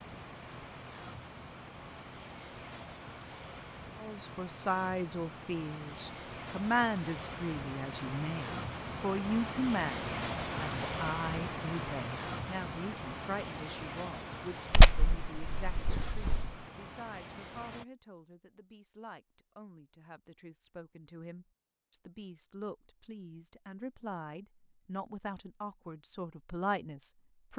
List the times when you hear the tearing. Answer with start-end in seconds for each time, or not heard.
14.7-16.5.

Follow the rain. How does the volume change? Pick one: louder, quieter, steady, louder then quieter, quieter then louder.
louder then quieter.